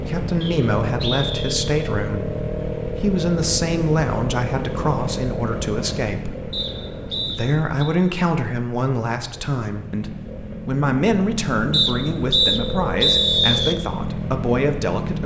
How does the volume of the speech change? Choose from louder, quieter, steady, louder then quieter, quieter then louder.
steady.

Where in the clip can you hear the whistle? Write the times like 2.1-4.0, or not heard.
0.4-1.7, 6.5-7.9, 11.7-13.8.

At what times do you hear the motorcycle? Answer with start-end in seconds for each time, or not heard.
0.0-15.2.